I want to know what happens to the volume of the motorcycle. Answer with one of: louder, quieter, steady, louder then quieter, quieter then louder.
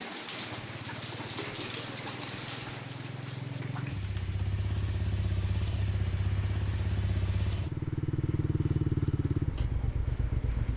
louder.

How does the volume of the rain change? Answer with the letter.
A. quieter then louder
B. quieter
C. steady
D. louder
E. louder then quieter
B.